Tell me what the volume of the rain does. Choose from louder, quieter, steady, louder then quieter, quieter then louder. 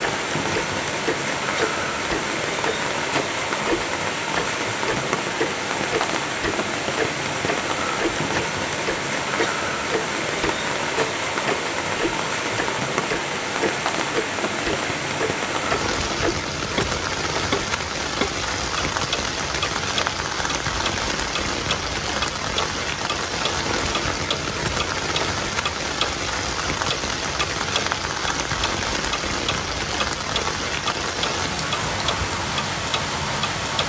steady.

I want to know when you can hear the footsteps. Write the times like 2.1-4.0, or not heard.
not heard.